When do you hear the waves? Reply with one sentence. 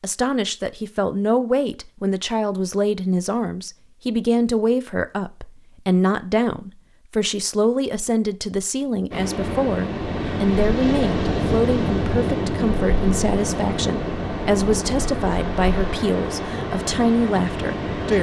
The waves can be heard from 9.1 to 18.1 s.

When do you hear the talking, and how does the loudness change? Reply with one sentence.
You can hear the talking from 0.0 to 18.1 s, at a steady volume.